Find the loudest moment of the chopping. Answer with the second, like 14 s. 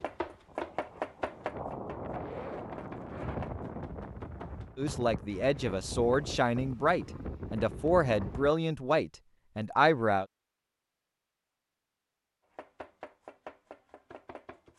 1 s.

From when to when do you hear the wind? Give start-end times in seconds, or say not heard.
0.0-8.5.